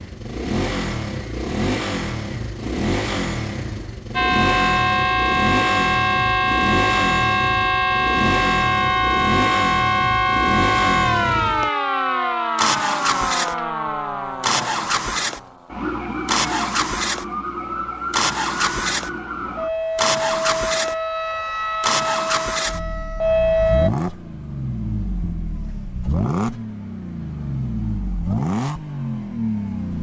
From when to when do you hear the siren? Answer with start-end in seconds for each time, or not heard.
4.2-23.9.